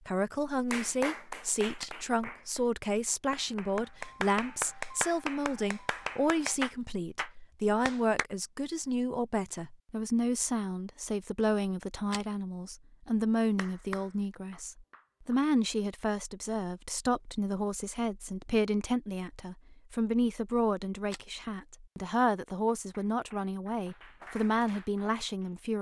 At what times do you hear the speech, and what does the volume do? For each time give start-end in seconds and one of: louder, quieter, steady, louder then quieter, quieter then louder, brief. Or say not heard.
0.1-25.7 steady.